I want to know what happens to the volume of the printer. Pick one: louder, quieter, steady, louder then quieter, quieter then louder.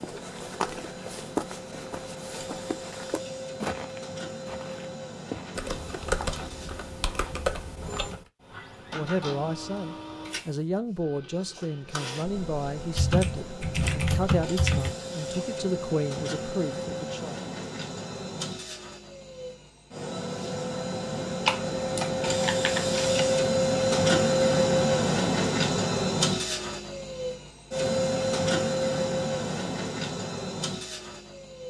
louder.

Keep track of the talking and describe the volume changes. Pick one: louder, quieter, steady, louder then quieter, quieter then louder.
steady.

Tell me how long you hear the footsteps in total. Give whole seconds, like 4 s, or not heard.
8 s.